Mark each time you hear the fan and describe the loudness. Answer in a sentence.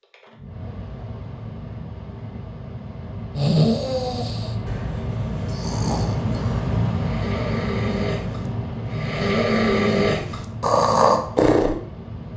You can hear the fan from 0.0 to 12.3 s, getting louder then quieter.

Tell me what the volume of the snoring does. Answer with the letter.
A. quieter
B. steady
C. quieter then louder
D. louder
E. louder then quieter
D.